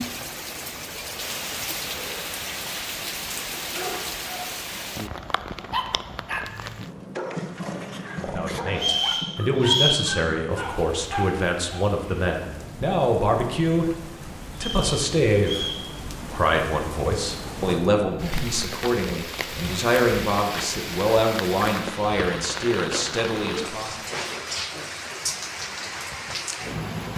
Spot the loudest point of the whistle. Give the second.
10 s.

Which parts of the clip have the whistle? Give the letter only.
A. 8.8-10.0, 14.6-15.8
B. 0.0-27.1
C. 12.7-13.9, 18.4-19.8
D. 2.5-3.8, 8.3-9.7
A.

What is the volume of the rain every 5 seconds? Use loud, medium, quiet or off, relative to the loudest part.
loud, medium, medium, loud, loud, loud.